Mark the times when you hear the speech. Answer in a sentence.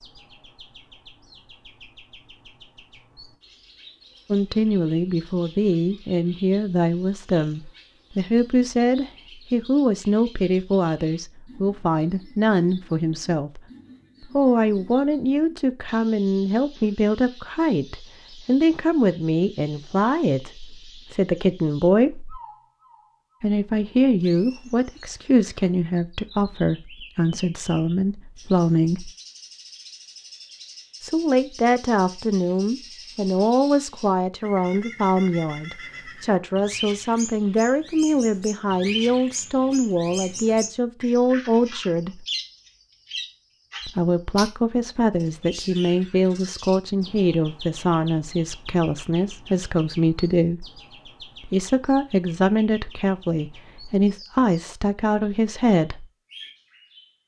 You can hear the speech from 4.3 to 13.6 s, from 14.2 to 22.4 s, from 23.4 to 29.1 s, from 31.0 to 42.2 s, from 43.9 to 50.6 s and from 51.5 to 56.0 s.